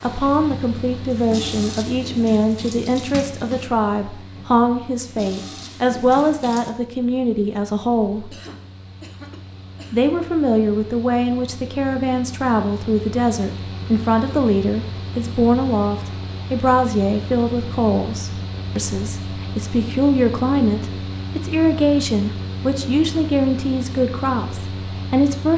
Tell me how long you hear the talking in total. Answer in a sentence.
The talking can be heard for 24 seconds in total.